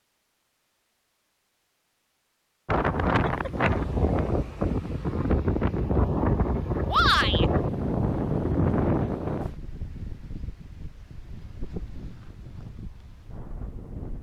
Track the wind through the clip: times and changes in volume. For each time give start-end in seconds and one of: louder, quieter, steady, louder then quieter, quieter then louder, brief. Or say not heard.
2.6-14.1 quieter.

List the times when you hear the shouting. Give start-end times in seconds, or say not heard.
6.9-7.5.